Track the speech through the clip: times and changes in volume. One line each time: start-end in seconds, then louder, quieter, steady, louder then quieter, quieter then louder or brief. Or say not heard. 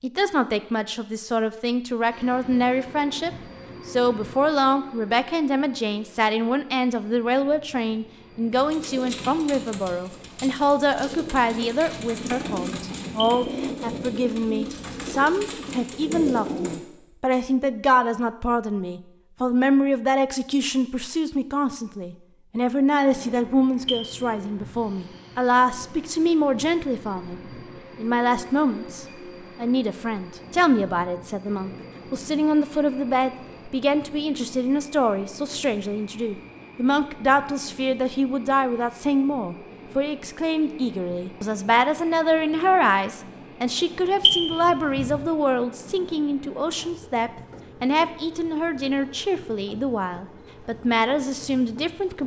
0.0-52.2 steady.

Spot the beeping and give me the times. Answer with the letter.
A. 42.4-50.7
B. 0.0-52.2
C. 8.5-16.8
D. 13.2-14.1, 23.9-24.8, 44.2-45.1
D.